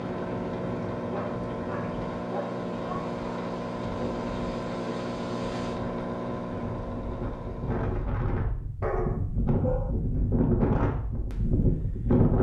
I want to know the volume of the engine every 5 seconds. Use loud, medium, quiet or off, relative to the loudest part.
loud, loud, off.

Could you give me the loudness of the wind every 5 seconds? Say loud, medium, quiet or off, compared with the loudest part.
quiet, medium, loud.